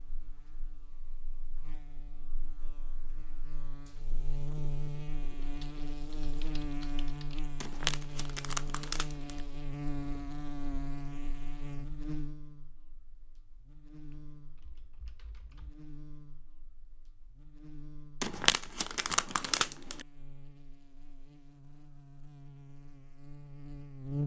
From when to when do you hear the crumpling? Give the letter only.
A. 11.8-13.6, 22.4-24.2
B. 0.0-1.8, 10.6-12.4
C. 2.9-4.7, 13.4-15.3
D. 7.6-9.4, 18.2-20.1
D.